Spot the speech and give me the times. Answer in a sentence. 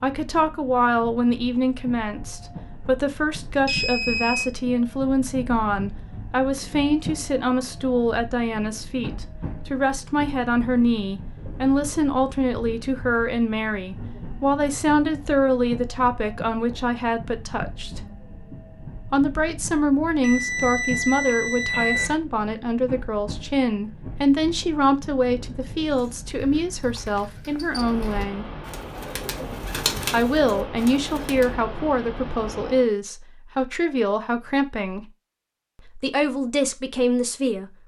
You can hear the speech from 0.0 to 18.0 s, from 19.1 to 28.4 s, from 30.1 to 35.0 s and from 35.9 to 37.7 s.